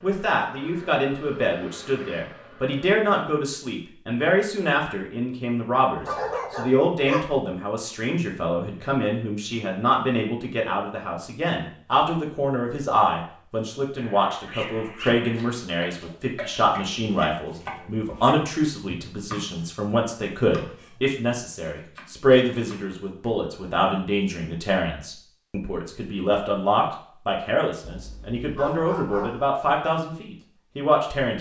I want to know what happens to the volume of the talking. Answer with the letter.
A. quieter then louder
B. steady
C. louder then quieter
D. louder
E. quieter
B.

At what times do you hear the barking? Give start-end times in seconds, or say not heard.
6.0-7.2, 13.9-15.6, 27.9-29.4.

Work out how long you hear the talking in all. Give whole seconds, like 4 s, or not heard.
31 s.